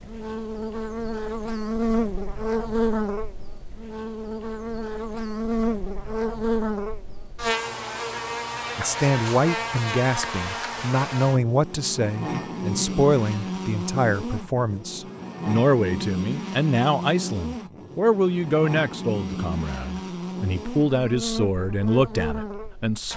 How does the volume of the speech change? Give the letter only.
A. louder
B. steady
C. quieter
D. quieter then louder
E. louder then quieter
B.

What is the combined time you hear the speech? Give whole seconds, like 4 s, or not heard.
14 s.